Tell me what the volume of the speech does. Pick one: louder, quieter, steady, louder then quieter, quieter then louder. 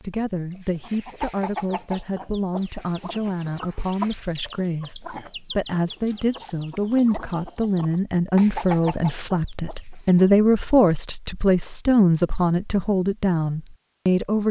louder.